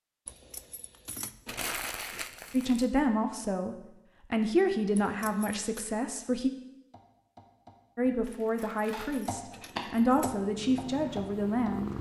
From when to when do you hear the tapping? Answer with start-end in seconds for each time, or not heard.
6.9-11.8.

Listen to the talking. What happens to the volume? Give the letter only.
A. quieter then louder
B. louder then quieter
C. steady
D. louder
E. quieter
C.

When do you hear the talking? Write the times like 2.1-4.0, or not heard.
2.5-6.5, 8.0-11.9.